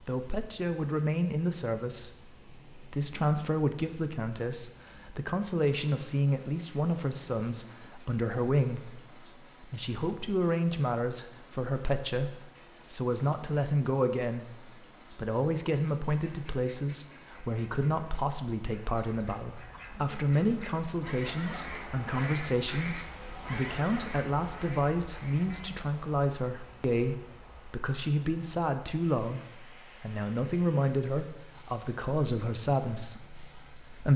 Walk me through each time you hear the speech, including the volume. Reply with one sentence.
The speech can be heard from 0.0 to 34.1 s, at a steady volume.